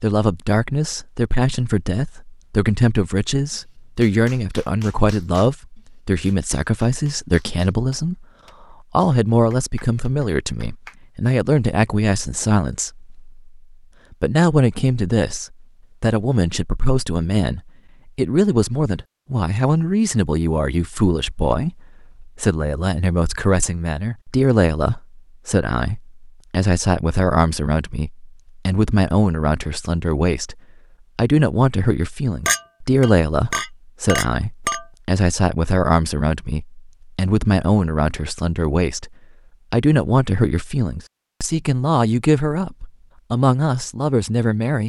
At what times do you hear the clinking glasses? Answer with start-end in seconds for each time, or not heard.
32.5-34.9.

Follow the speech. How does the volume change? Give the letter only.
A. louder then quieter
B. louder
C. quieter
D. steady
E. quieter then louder
D.